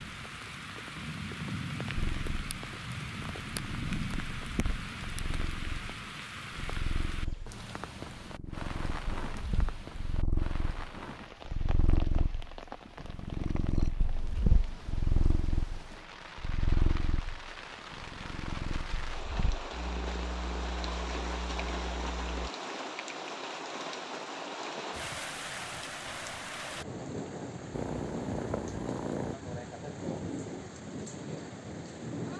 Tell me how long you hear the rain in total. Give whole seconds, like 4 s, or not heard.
32 s.